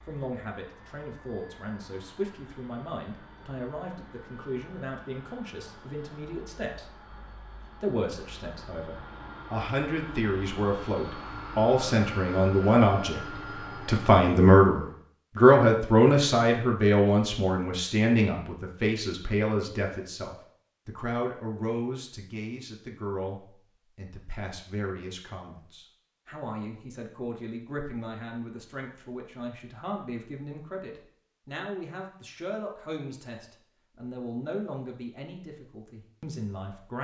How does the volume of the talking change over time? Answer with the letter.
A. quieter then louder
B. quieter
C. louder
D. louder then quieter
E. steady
D.